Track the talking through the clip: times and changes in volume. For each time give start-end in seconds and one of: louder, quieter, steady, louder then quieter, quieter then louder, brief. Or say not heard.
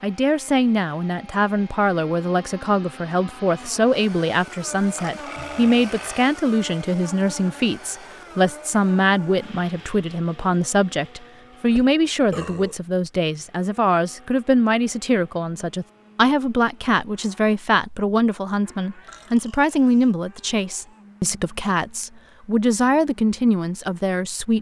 0.0-24.5 steady.